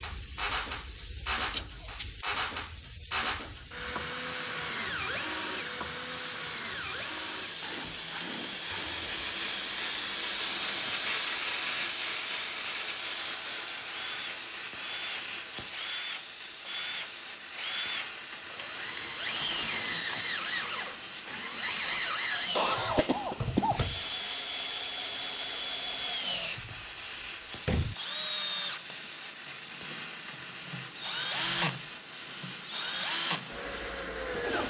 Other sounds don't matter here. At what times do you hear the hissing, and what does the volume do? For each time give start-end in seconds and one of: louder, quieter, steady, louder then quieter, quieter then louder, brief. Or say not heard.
0.0-34.6 louder then quieter.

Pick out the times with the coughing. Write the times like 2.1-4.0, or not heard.
22.6-23.9.